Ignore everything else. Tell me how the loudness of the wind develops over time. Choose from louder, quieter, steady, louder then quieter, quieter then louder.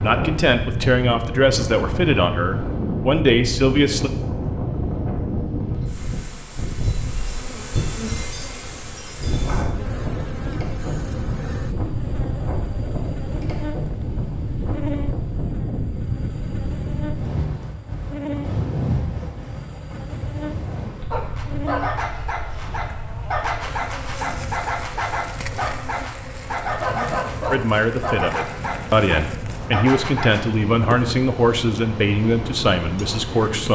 quieter.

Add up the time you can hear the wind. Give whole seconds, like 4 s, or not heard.
34 s.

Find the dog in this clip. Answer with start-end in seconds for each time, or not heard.
21.1-30.5.